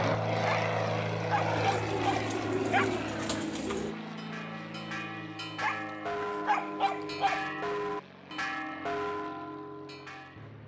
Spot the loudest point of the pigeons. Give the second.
3 s.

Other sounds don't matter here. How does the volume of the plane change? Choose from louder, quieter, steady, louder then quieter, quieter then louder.
quieter.